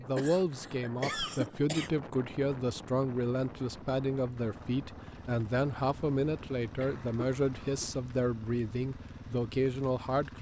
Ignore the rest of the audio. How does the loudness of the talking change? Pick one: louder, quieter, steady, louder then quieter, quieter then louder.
steady.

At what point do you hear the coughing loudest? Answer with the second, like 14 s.
1 s.